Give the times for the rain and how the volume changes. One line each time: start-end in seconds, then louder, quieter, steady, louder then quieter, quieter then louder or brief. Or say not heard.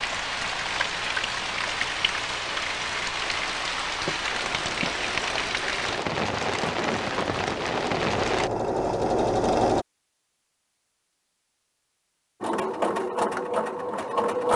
0.0-8.5 steady.